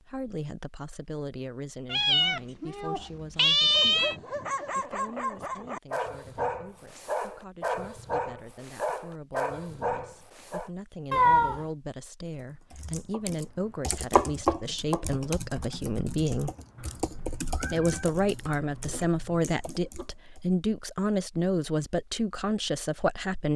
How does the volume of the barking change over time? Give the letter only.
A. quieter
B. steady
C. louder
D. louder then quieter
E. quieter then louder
B.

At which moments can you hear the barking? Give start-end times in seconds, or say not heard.
3.6-10.7.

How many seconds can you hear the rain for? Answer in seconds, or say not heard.
not heard.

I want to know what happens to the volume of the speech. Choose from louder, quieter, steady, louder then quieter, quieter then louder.
quieter then louder.